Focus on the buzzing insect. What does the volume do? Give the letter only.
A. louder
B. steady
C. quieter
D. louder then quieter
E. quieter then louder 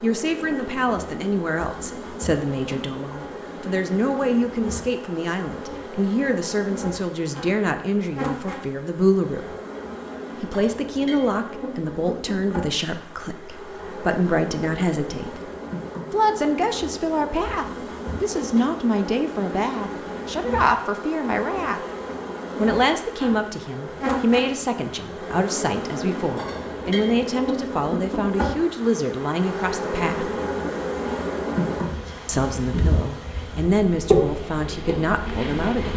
A.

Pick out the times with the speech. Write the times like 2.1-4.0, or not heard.
0.0-9.4, 10.4-15.5, 16.1-21.8, 22.6-30.3, 32.2-35.9.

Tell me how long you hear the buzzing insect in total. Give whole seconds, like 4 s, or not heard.
36 s.